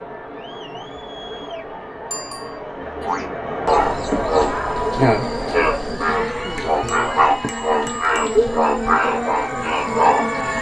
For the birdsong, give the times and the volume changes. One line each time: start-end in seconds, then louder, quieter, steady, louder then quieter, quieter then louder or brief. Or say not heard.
not heard.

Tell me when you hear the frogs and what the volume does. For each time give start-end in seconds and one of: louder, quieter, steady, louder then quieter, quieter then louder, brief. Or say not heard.
3.0-10.5 steady.